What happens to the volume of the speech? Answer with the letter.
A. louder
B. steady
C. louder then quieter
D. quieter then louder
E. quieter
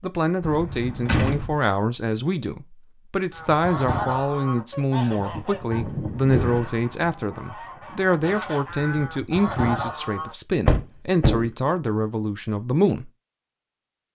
B.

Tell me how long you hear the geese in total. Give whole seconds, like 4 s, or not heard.
7 s.